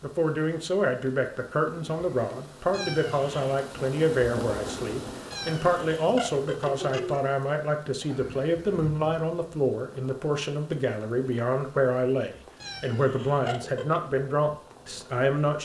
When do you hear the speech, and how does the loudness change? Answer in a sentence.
You can hear the speech from 0.0 to 15.5 s, at a steady volume.